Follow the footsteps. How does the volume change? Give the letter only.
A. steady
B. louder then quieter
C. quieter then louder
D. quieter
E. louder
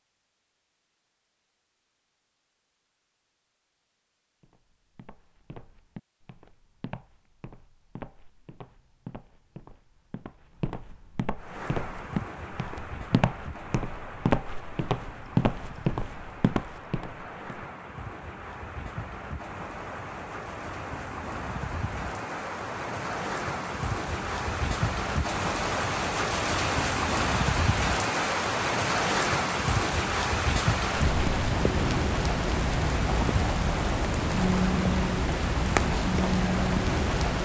E.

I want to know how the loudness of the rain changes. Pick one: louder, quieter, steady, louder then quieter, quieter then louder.
louder.